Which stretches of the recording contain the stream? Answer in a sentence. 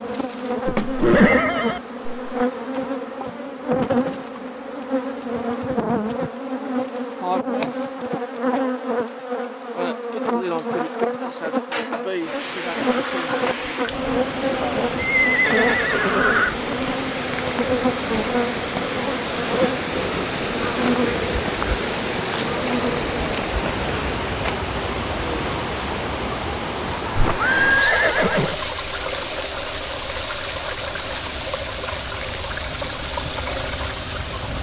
You can hear the stream from 12.2 to 34.5 s.